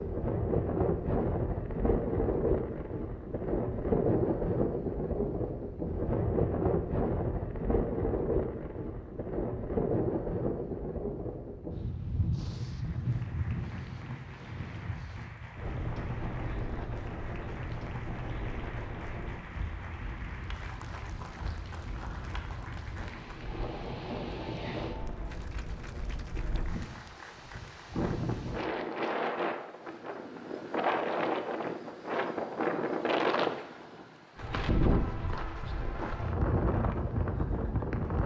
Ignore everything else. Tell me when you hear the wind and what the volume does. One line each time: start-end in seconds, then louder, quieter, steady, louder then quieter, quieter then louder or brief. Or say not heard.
0.0-38.2 quieter then louder.